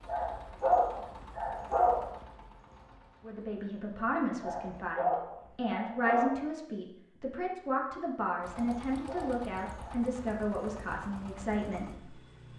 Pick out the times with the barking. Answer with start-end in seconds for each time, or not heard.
0.1-2.1, 4.4-6.4, 8.5-10.1.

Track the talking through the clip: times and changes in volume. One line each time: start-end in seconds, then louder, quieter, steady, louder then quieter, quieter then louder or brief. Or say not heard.
3.2-11.8 steady.